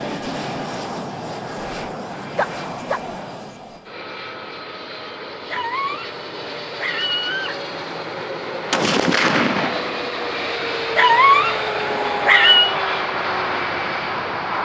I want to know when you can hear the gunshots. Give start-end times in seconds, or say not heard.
8.7-9.9.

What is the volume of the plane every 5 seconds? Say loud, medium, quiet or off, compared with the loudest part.
medium, medium, loud.